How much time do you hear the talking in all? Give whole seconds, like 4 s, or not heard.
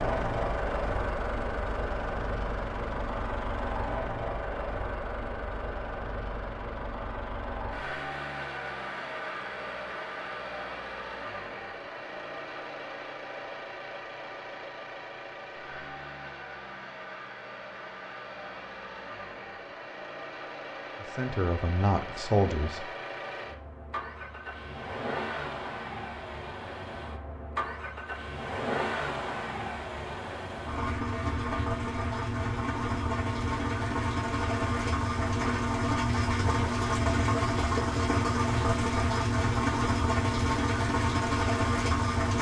2 s.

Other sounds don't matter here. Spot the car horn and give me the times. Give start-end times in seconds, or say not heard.
not heard.